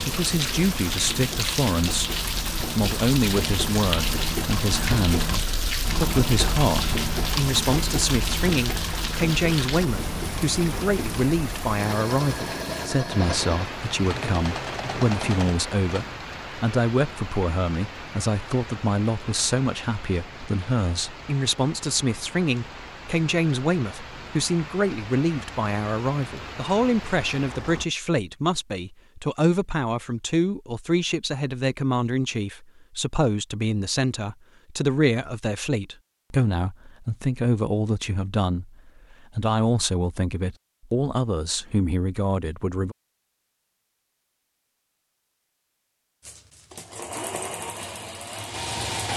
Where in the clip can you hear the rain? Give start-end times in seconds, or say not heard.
0.0-27.9.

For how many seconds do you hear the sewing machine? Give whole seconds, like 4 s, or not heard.
19 s.